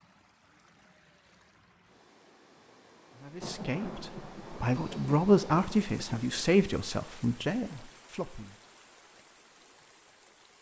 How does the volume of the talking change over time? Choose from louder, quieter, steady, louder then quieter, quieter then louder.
louder then quieter.